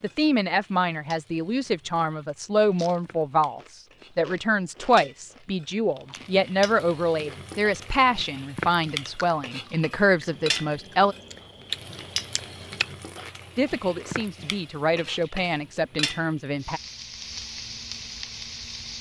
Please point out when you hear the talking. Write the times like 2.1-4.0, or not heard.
0.0-11.2, 13.6-16.8.